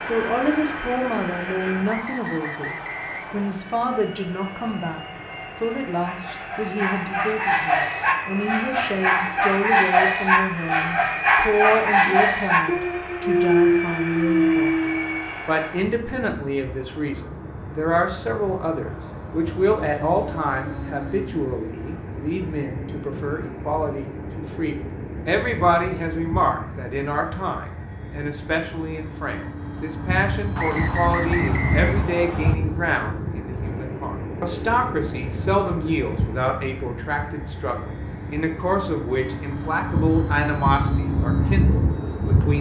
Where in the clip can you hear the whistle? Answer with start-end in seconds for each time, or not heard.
1.9-3.6, 30.6-32.5.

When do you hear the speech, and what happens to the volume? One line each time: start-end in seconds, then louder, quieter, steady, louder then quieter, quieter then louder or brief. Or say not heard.
0.0-42.5 steady.